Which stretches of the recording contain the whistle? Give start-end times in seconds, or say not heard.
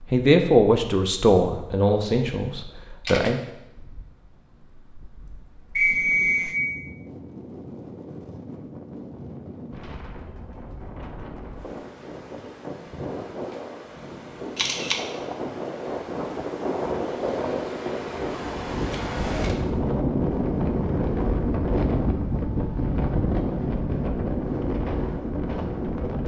5.8-6.6.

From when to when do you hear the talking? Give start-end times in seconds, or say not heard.
0.0-3.4.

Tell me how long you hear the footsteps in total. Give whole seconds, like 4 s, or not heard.
not heard.